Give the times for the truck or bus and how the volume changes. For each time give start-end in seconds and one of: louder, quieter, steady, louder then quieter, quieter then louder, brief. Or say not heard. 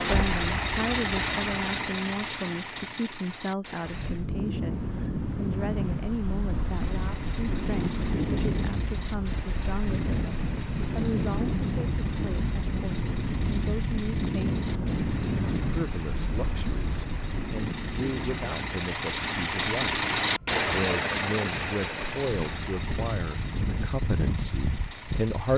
0.0-4.2 quieter
6.5-25.5 louder then quieter.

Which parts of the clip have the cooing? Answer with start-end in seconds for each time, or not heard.
not heard.